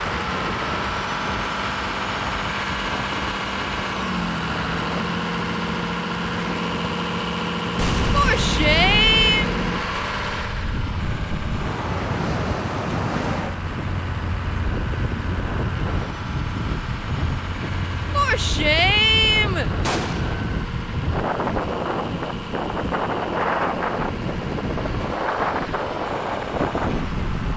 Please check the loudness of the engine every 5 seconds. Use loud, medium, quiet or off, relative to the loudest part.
loud, loud, medium, medium, medium, medium.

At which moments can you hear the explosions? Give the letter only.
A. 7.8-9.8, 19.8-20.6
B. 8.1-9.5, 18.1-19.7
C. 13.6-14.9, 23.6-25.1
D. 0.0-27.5
A.